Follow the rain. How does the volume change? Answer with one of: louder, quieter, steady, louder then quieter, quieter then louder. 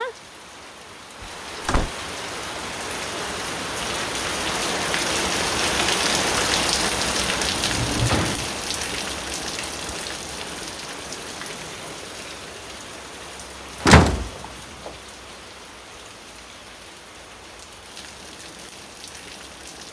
louder then quieter.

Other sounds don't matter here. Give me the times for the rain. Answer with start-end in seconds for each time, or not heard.
0.0-19.8.